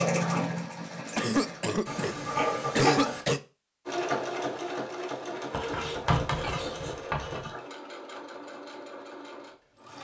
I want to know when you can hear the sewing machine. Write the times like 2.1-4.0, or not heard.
0.0-1.8, 3.9-9.9.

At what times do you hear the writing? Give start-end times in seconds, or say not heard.
1.9-3.2, 5.5-7.5.